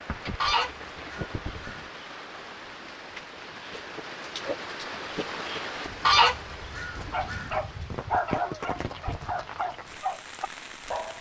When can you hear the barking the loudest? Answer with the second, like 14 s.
8 s.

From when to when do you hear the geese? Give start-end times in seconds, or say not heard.
0.4-1.9, 6.0-7.5.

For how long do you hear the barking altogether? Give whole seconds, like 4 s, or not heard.
4 s.